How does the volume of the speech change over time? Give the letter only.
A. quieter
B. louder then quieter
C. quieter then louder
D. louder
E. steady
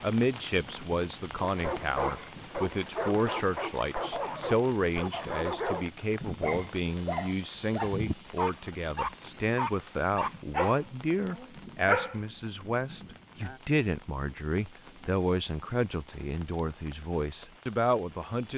E.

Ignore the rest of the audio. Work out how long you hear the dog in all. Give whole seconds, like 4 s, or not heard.
11 s.